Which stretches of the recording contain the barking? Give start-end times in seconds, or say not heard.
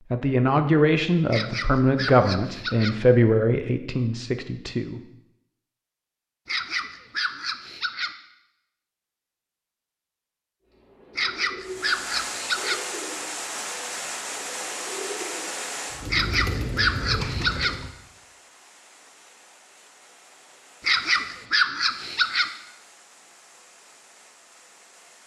1.3-3.0, 6.5-8.1, 11.2-12.8, 16.1-17.8, 20.8-22.5.